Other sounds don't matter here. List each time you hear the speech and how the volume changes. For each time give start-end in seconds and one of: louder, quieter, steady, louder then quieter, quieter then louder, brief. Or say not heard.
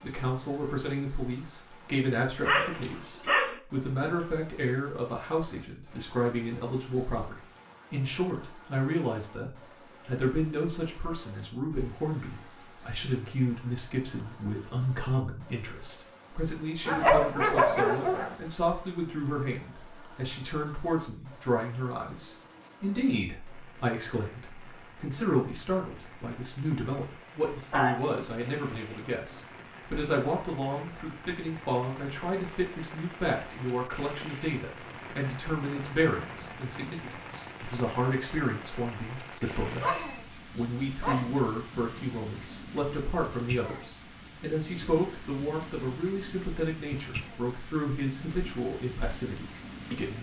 0.0-50.1 steady.